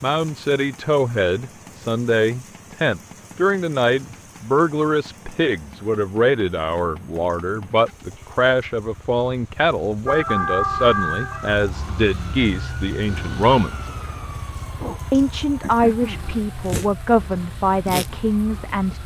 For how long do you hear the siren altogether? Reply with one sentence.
The siren can be heard for 9 seconds in total.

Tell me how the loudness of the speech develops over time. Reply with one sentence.
The volume of the speech stays about the same.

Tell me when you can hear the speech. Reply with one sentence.
The speech can be heard from 0.0 to 13.9 s and from 15.1 to 19.0 s.